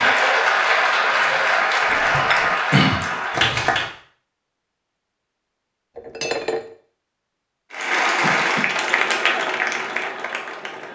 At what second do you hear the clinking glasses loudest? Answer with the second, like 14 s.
6 s.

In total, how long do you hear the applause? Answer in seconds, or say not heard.
7 s.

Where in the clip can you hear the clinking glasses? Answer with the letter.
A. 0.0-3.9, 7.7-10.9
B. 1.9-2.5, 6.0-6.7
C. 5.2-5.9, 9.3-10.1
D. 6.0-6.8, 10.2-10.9
B.